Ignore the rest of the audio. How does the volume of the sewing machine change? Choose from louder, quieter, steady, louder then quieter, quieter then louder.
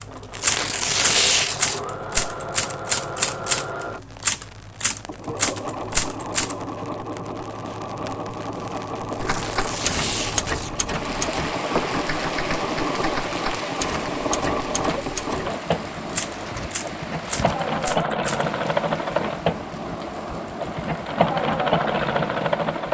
louder.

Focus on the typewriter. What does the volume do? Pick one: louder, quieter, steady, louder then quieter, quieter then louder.
quieter.